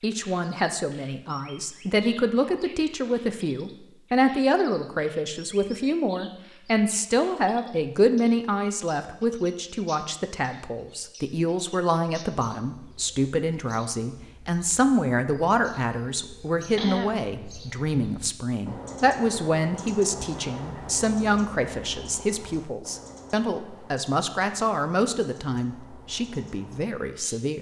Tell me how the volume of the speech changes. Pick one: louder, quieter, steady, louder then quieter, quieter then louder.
steady.